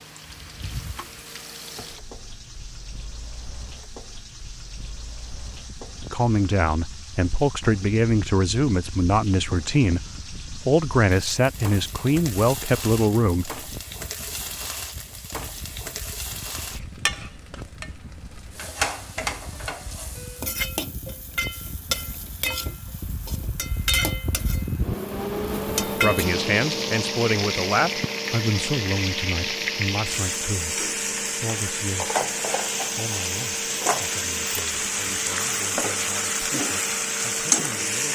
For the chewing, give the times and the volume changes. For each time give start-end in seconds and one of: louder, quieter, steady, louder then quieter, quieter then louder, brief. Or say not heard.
not heard.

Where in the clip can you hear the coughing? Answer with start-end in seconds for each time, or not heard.
not heard.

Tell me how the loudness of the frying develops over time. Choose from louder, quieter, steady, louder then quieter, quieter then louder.
louder.